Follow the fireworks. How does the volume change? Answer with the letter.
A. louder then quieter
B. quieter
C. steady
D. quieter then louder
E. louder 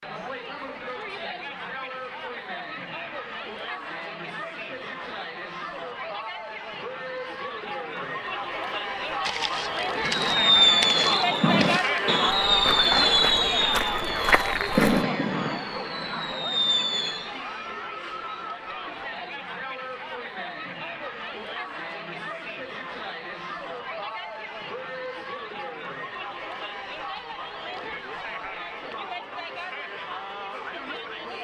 B.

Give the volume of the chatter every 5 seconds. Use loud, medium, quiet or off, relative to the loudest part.
medium, medium, loud, medium, medium, medium, medium.